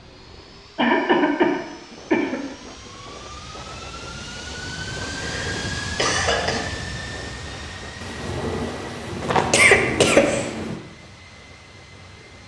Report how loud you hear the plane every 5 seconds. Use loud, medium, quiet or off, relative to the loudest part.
medium, loud, quiet.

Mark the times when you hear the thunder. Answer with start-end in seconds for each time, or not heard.
8.0-10.8.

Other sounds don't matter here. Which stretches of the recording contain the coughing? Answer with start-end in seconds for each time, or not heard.
0.8-2.4, 5.0-6.7, 9.2-10.5.